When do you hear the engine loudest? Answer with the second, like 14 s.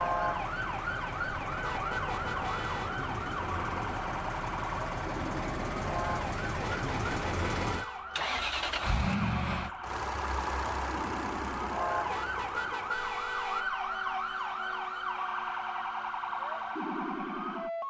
9 s.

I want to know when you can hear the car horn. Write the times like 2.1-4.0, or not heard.
1.6-2.9, 6.6-8.1, 12.1-13.7.